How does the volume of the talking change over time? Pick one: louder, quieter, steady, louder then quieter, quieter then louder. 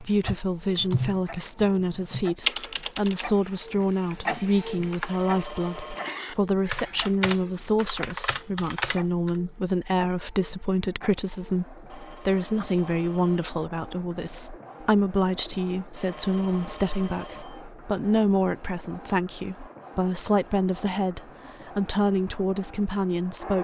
steady.